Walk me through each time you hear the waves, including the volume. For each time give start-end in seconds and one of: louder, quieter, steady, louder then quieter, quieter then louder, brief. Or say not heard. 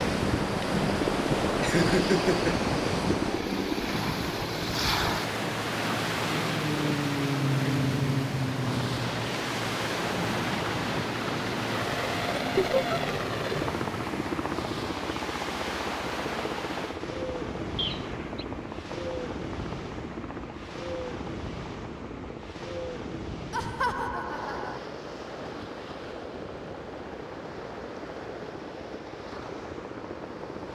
0.0-30.7 quieter.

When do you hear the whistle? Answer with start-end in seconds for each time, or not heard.
17.8-18.4.